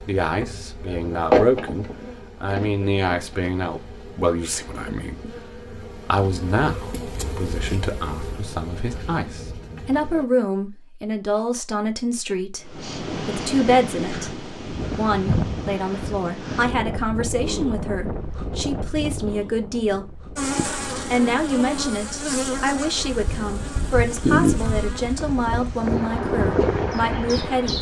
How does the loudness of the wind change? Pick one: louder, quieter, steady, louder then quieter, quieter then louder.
quieter then louder.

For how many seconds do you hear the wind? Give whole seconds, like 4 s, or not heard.
15 s.